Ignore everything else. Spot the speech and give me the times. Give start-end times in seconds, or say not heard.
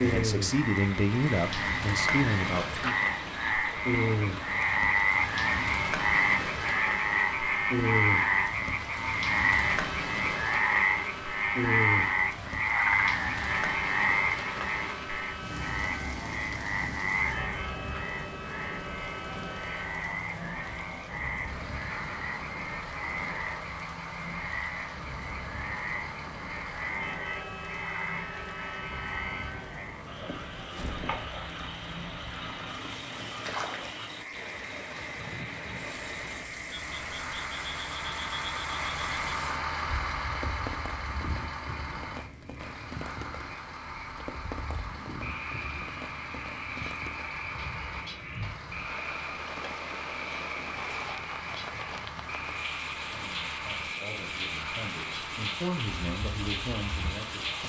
0.0-3.0, 53.1-57.6.